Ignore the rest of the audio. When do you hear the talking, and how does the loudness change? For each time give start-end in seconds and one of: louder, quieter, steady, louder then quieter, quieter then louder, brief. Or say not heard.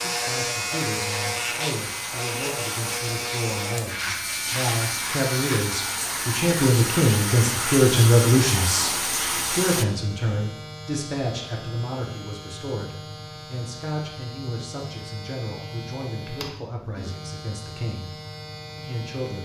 0.0-18.1 louder then quieter
18.8-19.4 brief.